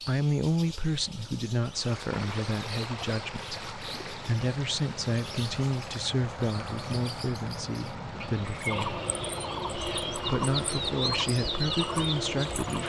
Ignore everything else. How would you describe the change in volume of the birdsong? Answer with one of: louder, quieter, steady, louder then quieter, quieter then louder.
louder.